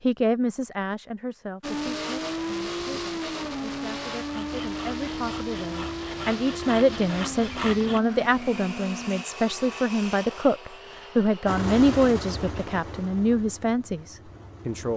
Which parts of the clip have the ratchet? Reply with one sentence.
The ratchet can't be heard in this clip.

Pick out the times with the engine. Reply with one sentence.
The engine can be heard from 1.6 to 9.2 s and from 11.4 to 14.9 s.